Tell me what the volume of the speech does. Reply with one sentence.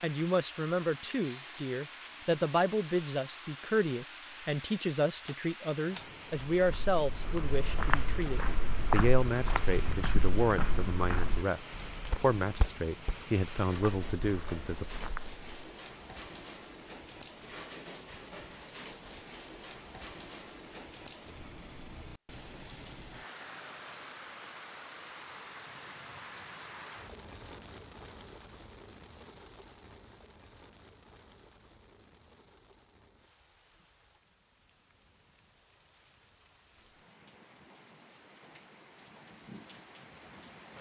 The volume of the speech stays about the same.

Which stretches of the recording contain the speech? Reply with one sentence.
The speech can be heard from 0.0 to 14.8 s.